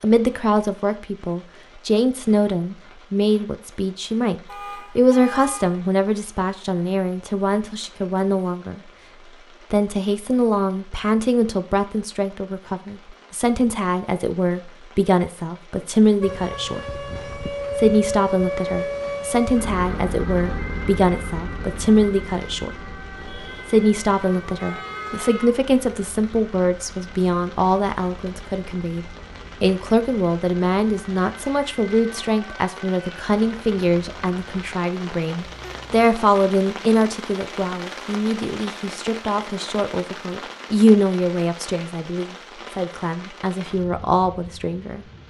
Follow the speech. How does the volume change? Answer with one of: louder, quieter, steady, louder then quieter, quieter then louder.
steady.